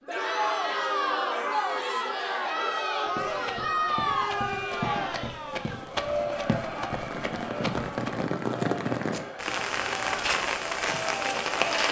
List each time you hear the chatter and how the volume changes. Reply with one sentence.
You can hear the chatter from 0.1 to 11.8 s, getting quieter.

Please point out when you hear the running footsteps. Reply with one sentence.
You can hear the running footsteps from 3.0 to 8.3 s.